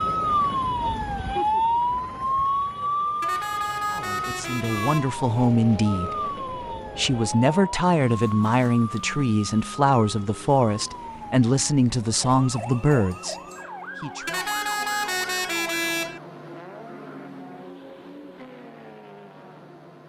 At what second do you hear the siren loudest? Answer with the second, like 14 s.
2 s.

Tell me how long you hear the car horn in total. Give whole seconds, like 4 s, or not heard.
4 s.